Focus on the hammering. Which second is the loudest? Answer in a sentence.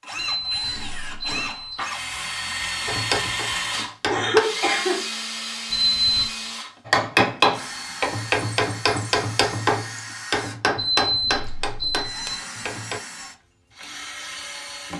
The volume of the hammering peaks at 7 seconds.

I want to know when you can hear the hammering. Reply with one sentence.
The hammering can be heard from 2.9 to 4.4 s and from 6.8 to 13.0 s.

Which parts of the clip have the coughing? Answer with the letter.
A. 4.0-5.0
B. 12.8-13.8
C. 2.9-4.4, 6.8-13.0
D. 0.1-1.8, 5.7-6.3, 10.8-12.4
A.